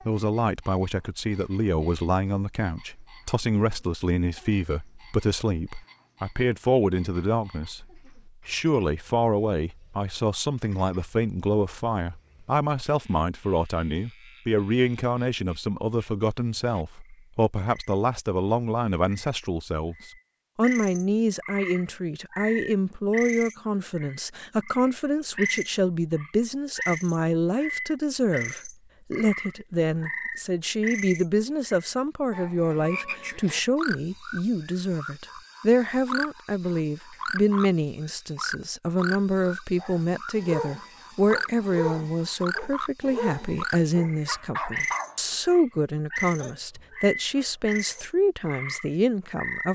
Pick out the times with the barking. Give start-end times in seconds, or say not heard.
39.8-45.5, 46.2-48.0.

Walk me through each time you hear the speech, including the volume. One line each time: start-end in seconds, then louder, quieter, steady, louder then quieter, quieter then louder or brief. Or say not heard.
0.1-19.9 steady
20.6-49.6 steady.